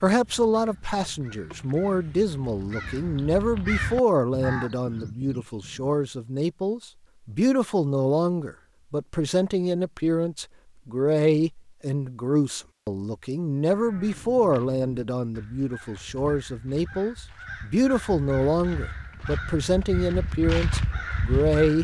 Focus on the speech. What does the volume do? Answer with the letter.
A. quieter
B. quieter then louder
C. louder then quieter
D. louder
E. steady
E.